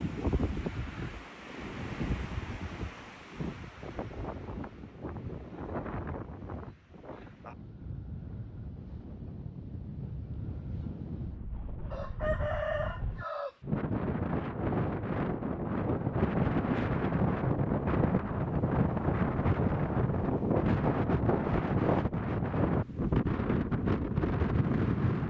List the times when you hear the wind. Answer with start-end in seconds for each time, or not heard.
0.0-25.2.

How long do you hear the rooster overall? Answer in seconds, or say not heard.
2 s.